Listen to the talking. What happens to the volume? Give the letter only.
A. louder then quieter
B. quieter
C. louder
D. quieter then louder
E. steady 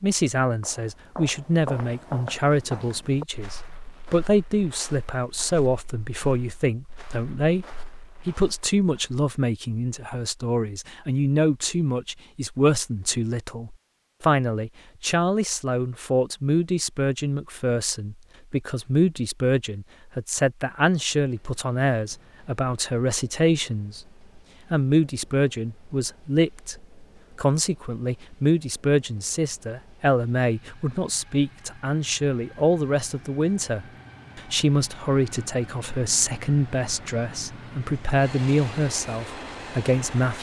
E.